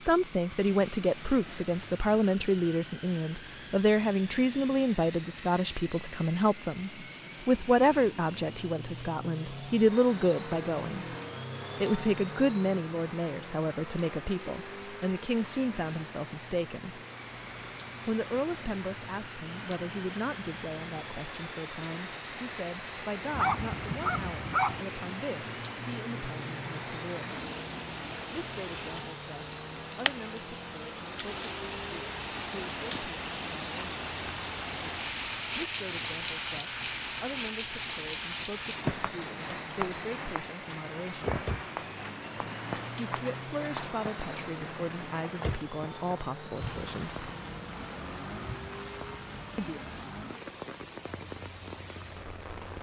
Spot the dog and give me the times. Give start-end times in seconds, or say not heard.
23.3-24.9.